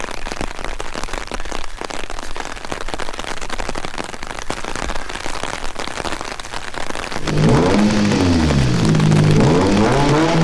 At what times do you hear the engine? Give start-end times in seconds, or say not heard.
7.2-10.3.